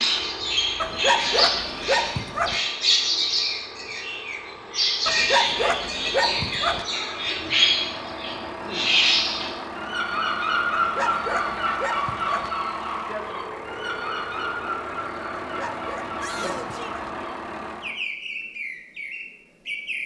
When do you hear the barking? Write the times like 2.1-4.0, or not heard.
0.8-2.6, 5.0-6.8, 10.7-12.5, 15.4-17.1.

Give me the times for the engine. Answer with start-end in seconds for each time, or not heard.
0.0-18.0.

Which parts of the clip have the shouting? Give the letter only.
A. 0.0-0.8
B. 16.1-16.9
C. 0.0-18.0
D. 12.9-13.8
B.